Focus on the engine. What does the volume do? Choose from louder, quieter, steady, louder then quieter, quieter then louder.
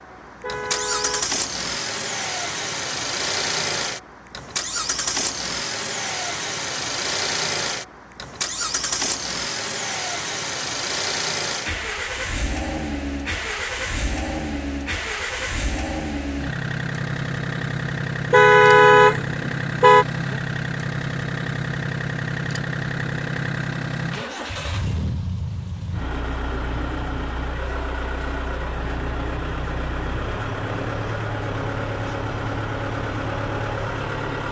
steady.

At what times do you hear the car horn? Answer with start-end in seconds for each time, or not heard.
0.4-1.4, 18.3-20.1.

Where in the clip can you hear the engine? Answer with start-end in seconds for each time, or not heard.
0.0-34.4.